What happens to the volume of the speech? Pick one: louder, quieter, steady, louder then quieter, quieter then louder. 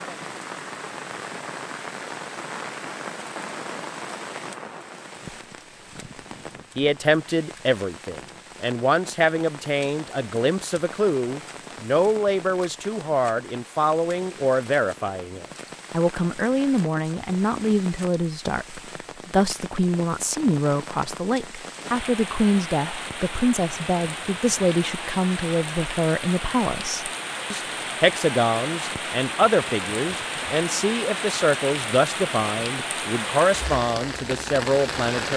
steady.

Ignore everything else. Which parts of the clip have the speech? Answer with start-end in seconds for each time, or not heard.
6.8-35.3.